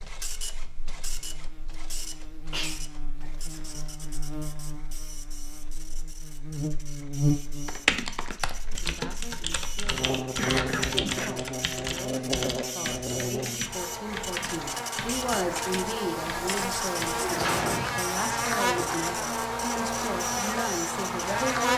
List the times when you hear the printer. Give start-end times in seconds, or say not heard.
0.0-21.5.